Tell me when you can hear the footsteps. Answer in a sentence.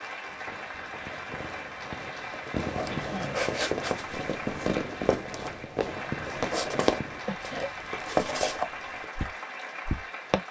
You can hear the footsteps from 2.8 to 10.4 s.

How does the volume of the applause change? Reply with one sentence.
The volume of the applause stays about the same.